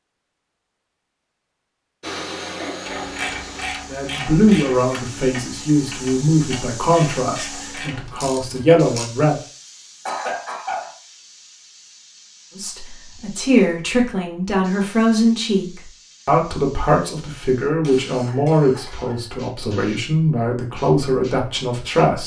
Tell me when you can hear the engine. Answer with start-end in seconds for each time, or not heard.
2.0-3.6.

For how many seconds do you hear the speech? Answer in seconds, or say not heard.
15 s.